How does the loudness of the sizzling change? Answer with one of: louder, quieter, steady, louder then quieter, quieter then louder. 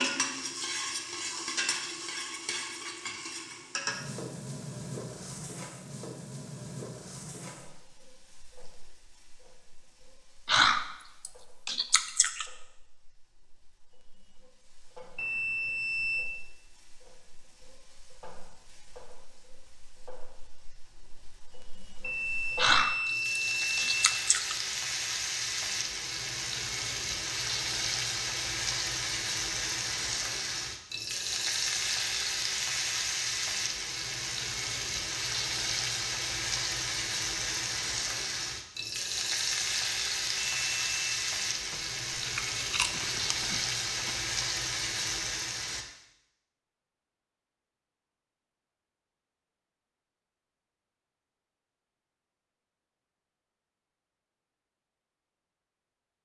quieter then louder.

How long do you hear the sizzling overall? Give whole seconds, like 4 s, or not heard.
46 s.